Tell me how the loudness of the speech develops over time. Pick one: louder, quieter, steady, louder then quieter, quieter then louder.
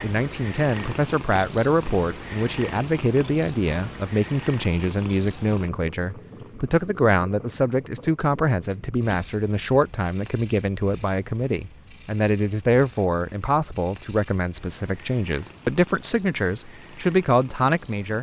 steady.